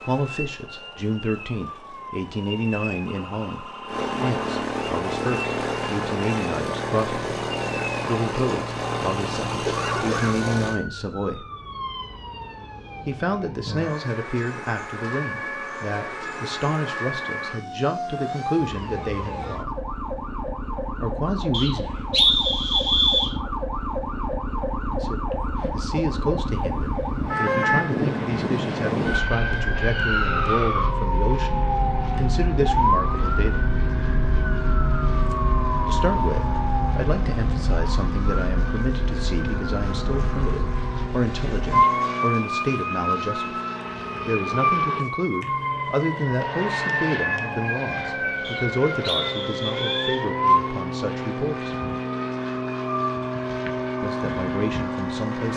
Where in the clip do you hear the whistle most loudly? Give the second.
22 s.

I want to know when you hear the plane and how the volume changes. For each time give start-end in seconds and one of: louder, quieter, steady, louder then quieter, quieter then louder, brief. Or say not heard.
0.0-10.8 louder
25.5-55.5 louder.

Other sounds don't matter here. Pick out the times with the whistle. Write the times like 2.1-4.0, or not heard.
21.5-23.4, 48.4-50.2.